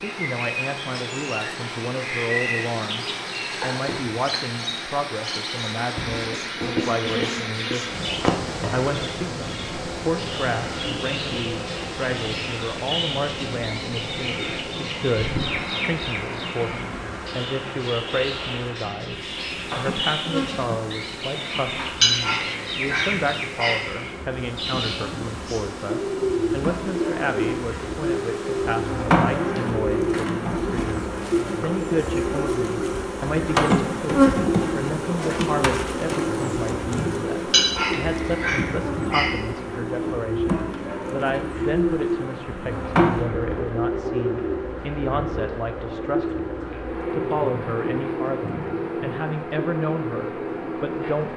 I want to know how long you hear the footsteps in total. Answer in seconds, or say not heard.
not heard.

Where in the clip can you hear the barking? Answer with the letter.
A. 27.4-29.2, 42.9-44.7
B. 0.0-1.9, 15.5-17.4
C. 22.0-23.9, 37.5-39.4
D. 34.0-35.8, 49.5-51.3
C.